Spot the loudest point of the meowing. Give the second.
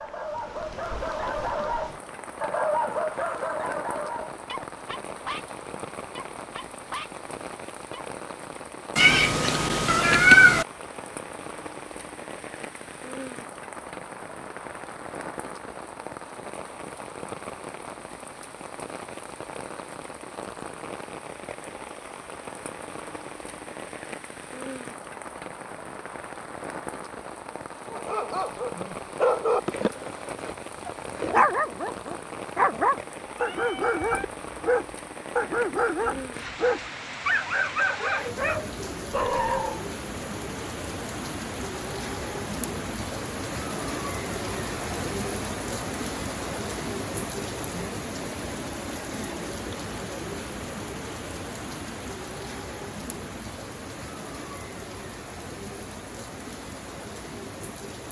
10 s.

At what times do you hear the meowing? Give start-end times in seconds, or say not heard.
8.9-10.7, 33.4-34.2.